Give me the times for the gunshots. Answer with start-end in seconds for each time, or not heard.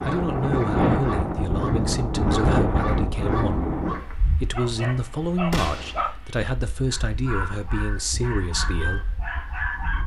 5.5-6.0.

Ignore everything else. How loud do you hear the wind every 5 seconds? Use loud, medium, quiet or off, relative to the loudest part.
loud, quiet.